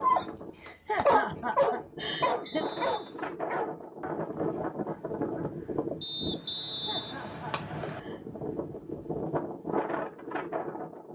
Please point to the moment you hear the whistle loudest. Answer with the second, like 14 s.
7 s.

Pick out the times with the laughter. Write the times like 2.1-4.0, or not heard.
0.6-2.6, 6.7-8.2.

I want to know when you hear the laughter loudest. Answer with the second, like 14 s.
1 s.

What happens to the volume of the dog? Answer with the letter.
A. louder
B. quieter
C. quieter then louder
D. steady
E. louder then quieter
B.